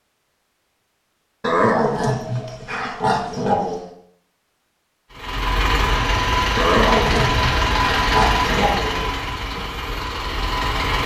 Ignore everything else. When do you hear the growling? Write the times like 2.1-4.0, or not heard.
1.4-3.9, 6.5-9.1.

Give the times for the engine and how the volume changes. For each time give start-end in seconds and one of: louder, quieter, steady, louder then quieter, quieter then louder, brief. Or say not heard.
5.1-11.0 quieter.